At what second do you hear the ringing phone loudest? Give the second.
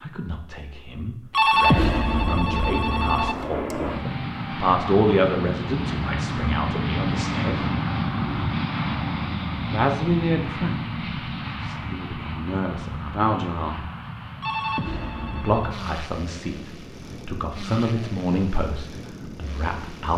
2 s.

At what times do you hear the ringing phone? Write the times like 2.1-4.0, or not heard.
1.3-3.4, 14.4-15.8.